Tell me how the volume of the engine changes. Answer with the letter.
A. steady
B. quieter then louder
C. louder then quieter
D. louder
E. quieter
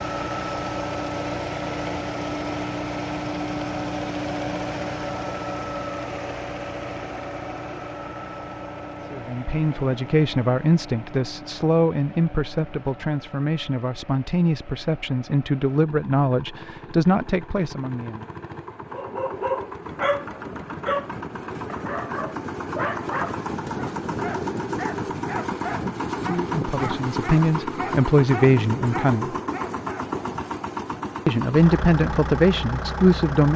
B.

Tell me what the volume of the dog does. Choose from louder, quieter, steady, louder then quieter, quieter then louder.
quieter.